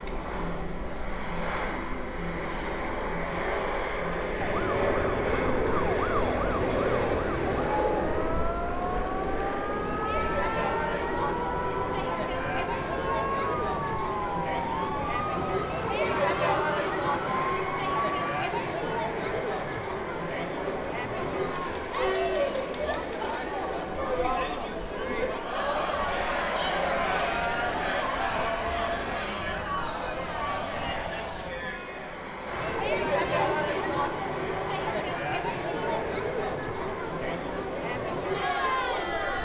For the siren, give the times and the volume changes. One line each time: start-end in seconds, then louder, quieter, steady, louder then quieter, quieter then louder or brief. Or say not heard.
4.3-18.4 steady.